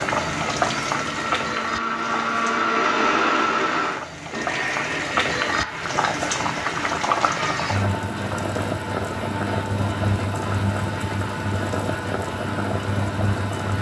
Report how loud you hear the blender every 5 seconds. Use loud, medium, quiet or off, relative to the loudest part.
loud, medium, medium.